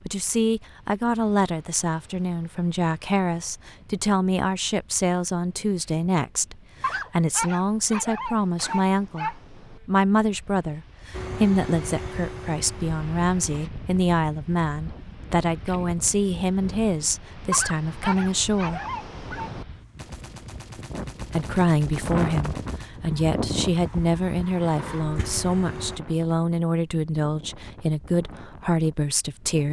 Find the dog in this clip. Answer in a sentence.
You can hear the dog from 6.8 to 9.3 s and from 17.5 to 19.5 s.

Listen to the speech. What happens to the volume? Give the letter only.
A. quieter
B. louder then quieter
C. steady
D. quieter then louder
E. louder
C.